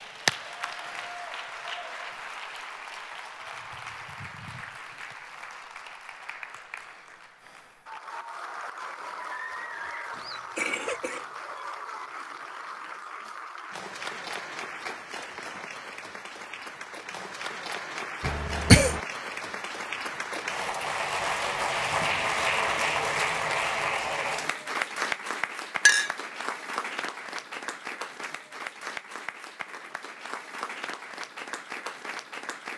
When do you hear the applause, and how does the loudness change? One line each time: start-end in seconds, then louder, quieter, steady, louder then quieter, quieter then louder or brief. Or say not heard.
0.0-32.7 louder then quieter.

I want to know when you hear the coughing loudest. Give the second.
19 s.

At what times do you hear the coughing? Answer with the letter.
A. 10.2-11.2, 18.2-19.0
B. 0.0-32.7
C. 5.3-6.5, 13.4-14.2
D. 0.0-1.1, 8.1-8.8
A.